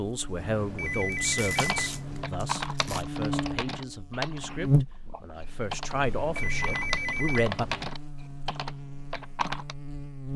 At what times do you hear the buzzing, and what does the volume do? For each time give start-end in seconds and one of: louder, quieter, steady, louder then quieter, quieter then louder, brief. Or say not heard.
0.0-10.3 louder then quieter.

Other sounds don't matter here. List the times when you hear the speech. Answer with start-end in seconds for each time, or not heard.
0.0-7.7.